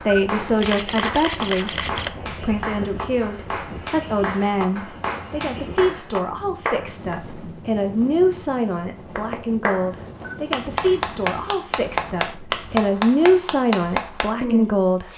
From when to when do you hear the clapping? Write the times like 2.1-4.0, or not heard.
0.0-7.3, 9.2-15.1.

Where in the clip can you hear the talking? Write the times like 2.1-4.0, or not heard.
0.1-15.1.